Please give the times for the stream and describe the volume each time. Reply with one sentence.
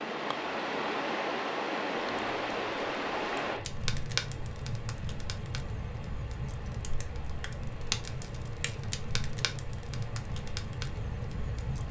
You can hear the stream from 0.0 to 11.8 s, getting quieter.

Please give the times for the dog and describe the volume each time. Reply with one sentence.
You can't hear the dog here.